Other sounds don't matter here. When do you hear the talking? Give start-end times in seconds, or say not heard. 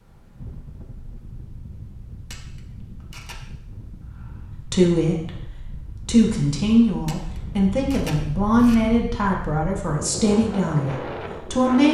4.5-5.4, 6.0-11.8.